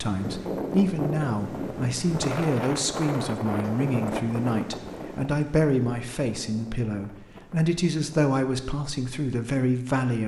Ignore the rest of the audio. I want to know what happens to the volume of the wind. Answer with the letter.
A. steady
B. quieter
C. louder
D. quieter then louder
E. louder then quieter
B.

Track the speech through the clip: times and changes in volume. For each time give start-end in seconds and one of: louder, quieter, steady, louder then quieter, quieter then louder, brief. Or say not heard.
0.0-10.2 steady.